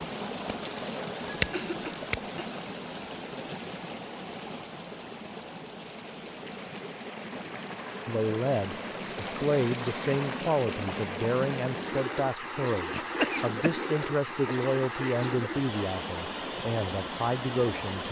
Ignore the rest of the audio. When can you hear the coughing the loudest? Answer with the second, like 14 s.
13 s.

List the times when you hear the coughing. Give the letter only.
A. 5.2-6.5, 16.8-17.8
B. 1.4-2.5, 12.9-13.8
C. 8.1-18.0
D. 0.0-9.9
B.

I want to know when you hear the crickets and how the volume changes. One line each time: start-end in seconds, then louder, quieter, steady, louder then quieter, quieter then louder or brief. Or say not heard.
not heard.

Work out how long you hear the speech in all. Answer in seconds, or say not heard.
10 s.